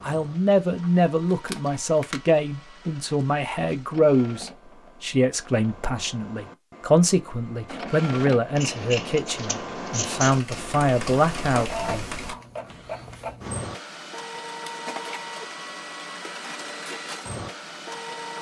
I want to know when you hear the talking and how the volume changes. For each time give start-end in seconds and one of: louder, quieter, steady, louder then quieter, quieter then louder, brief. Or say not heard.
0.0-11.7 steady.